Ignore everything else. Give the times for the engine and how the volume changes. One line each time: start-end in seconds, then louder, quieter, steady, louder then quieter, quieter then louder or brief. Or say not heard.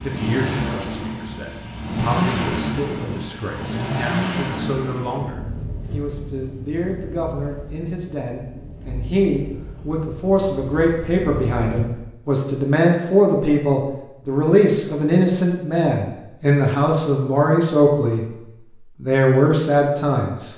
0.0-11.9 quieter.